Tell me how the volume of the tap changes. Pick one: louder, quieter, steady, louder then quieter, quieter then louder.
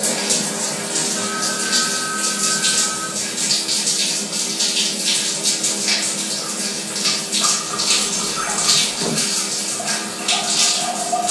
steady.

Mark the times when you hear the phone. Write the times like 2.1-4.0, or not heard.
1.1-3.1, 7.7-9.2.